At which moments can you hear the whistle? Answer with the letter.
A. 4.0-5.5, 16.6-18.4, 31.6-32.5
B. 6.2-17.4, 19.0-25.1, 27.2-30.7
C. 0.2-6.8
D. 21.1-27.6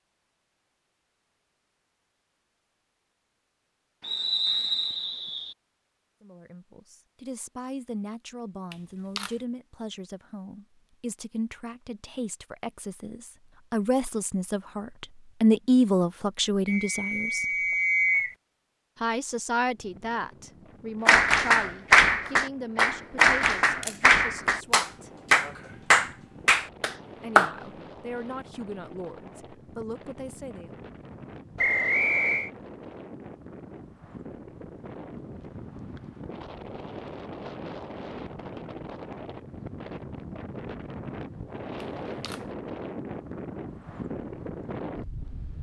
A.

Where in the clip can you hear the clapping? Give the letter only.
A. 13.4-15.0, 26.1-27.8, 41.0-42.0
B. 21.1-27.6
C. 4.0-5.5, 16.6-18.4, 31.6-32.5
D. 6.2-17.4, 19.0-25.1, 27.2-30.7
B.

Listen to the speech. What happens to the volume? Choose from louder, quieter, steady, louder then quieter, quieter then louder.
louder then quieter.